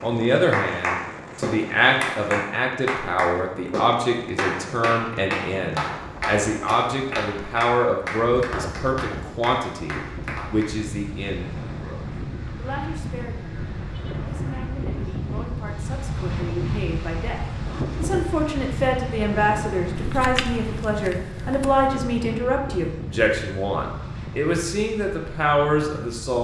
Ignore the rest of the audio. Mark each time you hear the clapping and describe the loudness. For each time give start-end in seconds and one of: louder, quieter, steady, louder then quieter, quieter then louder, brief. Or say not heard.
0.0-10.8 quieter.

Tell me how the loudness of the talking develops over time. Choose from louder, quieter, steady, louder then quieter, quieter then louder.
quieter then louder.